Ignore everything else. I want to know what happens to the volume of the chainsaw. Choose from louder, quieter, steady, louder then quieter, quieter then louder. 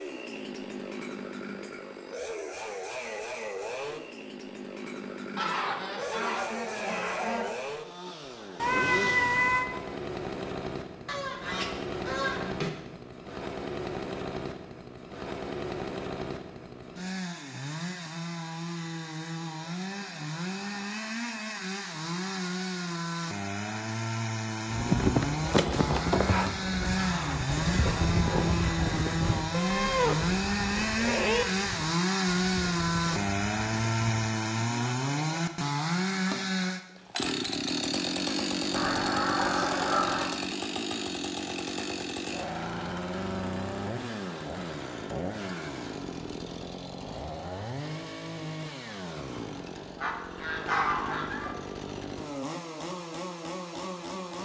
louder then quieter.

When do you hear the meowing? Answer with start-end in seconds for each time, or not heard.
8.6-9.7, 29.5-31.4.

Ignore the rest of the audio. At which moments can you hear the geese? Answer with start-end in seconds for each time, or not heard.
5.3-7.5, 11.1-12.7, 26.9-28.8, 38.7-40.3, 50.0-51.5.